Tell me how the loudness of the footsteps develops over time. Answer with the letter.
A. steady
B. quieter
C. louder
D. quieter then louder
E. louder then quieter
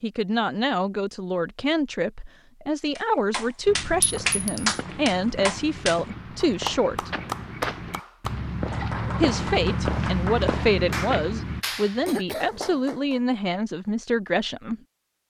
C.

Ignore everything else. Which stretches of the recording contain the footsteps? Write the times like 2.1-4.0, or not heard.
3.6-11.6.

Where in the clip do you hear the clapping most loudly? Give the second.
5 s.